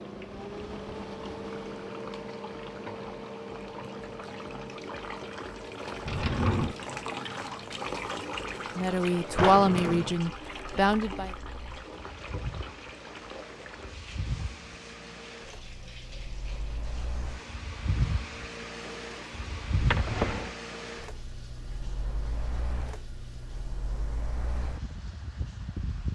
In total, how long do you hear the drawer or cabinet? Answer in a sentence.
You can hear the drawer or cabinet for 2 seconds altogether.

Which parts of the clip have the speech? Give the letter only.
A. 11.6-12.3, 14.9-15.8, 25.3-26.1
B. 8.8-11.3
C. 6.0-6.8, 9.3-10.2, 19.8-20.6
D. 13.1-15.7
B.